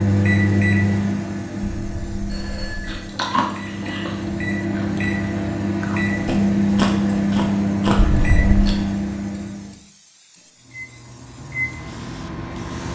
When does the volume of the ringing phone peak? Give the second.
8 s.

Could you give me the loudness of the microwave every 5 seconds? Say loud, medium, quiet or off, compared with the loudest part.
loud, loud, medium.